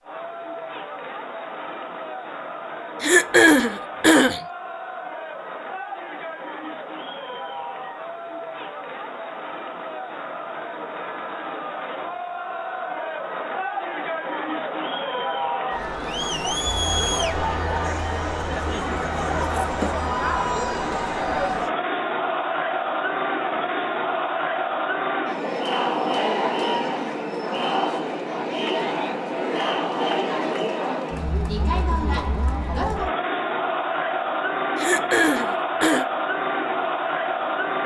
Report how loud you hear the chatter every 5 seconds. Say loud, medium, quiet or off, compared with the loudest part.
medium, medium, medium, loud, loud, loud, loud, loud.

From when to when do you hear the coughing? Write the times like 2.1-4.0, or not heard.
3.0-4.4, 34.8-36.0.